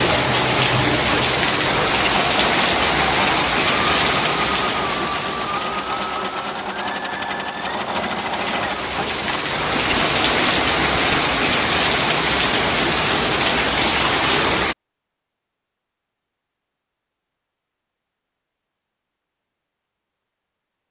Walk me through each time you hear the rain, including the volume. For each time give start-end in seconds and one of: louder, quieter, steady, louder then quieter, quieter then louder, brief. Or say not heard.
0.0-14.8 quieter then louder.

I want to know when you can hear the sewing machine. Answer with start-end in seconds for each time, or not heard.
0.0-11.6.